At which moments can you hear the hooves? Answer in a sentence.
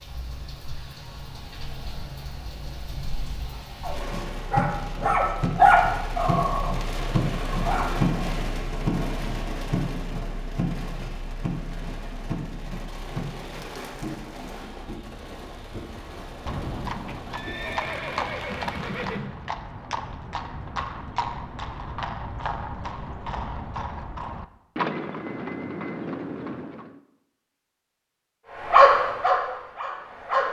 You can hear the hooves from 16.0 to 27.0 s.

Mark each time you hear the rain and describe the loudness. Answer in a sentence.
You can hear the rain from 0.0 to 19.2 s, getting louder then quieter.